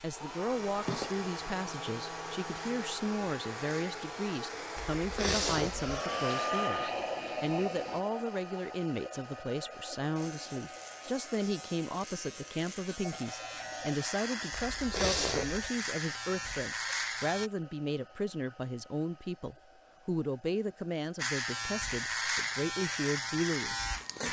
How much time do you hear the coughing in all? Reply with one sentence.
The coughing can be heard for 2 seconds in total.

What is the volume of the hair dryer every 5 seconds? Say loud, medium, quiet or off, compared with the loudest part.
loud, loud, medium, quiet, quiet.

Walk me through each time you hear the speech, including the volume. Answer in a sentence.
You can hear the speech from 0.0 to 23.8 s, at a steady volume.